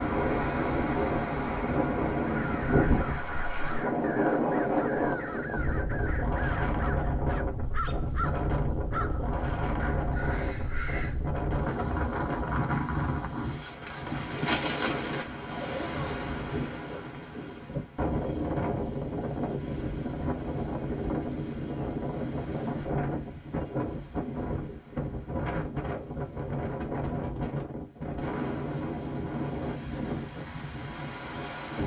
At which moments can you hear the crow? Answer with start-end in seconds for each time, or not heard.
2.2-11.3.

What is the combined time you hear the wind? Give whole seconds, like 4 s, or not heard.
32 s.